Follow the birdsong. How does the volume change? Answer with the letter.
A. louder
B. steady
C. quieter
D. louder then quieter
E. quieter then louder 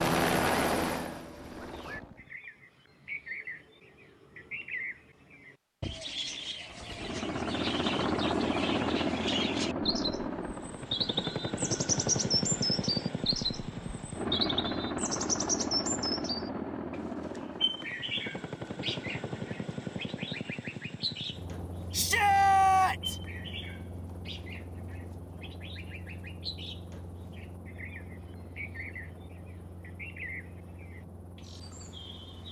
D.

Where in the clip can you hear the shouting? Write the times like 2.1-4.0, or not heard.
21.9-23.1.